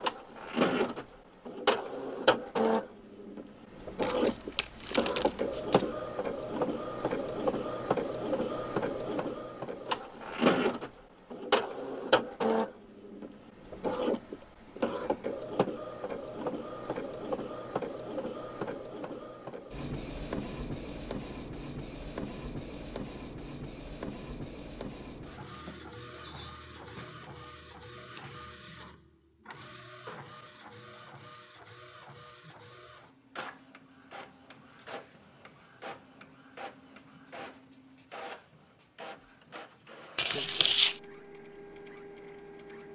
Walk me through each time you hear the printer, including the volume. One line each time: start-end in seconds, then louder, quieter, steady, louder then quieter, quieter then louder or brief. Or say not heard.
0.0-42.8 quieter.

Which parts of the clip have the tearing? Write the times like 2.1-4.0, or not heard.
4.0-5.9, 40.1-41.0.